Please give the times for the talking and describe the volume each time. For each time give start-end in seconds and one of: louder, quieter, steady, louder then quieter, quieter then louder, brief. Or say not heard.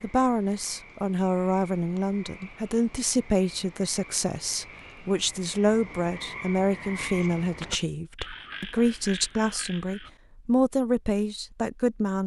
0.0-12.2 steady.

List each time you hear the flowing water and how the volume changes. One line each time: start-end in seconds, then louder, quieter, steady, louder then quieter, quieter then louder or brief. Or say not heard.
not heard.